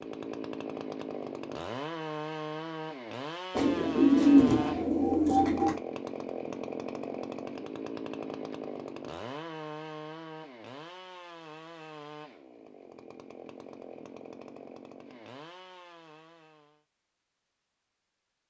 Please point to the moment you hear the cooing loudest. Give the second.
4 s.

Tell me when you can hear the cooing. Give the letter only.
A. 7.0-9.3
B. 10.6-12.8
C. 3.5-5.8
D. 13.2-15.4
C.